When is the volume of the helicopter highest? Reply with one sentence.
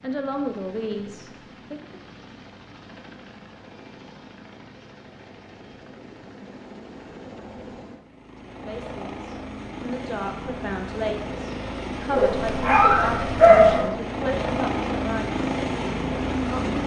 The volume of the helicopter peaks at 15 seconds.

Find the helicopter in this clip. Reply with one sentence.
You can hear the helicopter from 0.0 to 16.8 s.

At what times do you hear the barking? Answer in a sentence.
You can hear the barking from 12.1 to 13.9 s.